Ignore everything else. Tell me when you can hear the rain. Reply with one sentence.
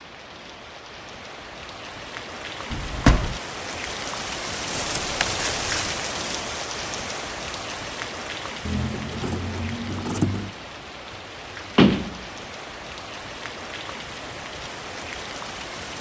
You can hear the rain from 0.0 to 15.9 s.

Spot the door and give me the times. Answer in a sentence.
You can hear the door from 2.7 to 3.4 s and from 11.8 to 12.2 s.